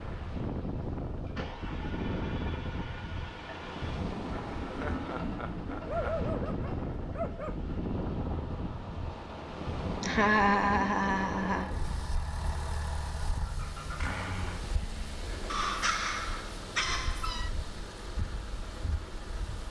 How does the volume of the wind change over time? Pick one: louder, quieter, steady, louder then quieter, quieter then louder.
quieter.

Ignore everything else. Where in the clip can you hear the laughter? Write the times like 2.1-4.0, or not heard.
4.7-6.1, 10.0-11.7.